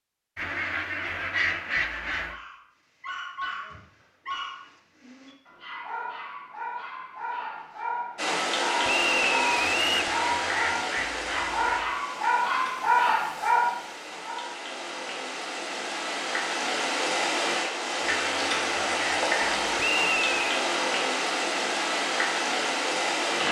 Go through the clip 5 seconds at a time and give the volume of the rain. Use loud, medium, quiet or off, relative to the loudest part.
off, loud, medium, loud, loud.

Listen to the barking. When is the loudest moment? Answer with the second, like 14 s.
13 s.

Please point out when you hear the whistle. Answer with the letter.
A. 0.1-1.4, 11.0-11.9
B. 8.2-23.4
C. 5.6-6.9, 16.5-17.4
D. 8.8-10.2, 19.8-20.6
D.